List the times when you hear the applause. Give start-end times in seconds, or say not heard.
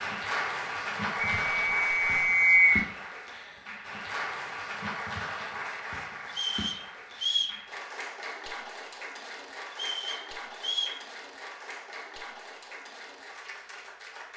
0.0-14.3.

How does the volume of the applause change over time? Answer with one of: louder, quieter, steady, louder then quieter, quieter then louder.
quieter.